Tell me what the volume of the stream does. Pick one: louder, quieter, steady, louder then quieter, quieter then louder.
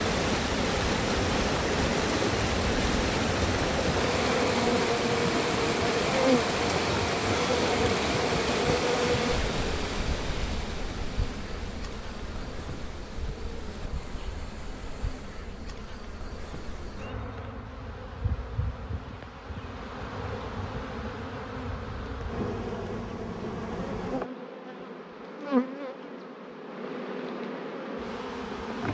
quieter.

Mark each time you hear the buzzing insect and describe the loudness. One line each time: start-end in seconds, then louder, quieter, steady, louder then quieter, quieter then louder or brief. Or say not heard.
0.1-28.8 quieter then louder.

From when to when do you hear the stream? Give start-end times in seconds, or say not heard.
0.0-15.6.